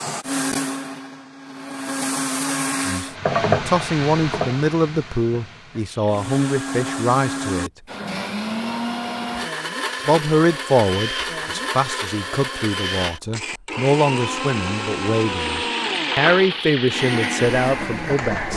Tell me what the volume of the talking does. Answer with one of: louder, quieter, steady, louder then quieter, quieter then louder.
steady.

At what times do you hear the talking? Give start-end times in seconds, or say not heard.
2.9-7.7, 10.1-18.5.